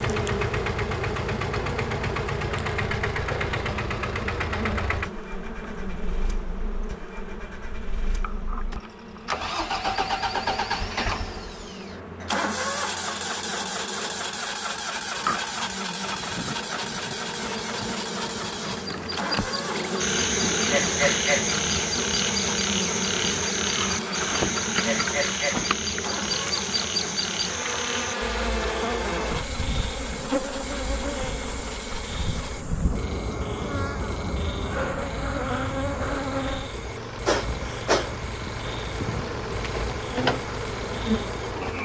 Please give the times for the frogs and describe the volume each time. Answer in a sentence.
The frogs can be heard from 19.7 to 41.8 s, getting quieter.